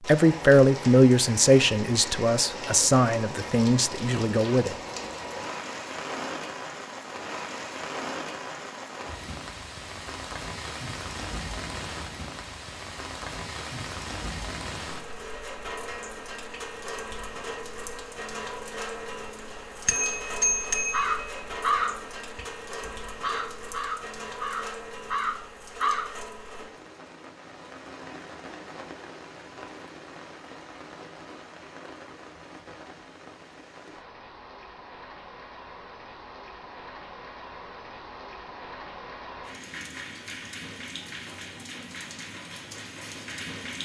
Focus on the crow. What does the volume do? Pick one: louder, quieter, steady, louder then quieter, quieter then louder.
quieter then louder.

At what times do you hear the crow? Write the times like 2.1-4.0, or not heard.
20.9-26.1.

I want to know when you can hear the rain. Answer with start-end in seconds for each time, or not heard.
0.0-43.7.